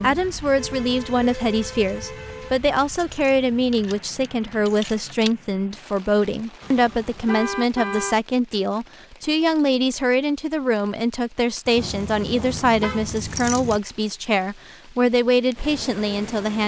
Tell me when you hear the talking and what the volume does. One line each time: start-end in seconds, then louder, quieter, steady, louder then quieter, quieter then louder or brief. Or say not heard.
0.0-16.6 steady.